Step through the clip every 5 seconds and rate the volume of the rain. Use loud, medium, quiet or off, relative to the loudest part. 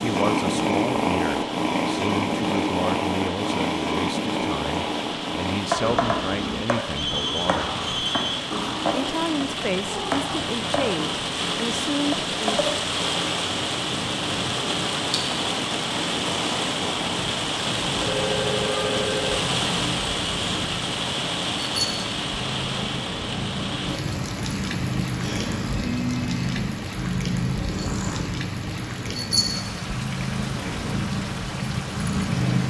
medium, medium, loud, loud, loud, medium, medium.